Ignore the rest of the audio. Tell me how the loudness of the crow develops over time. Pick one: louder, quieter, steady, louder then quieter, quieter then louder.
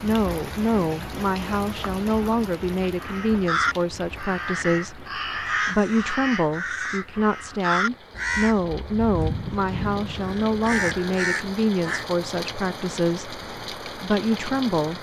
steady.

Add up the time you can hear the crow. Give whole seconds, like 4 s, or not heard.
9 s.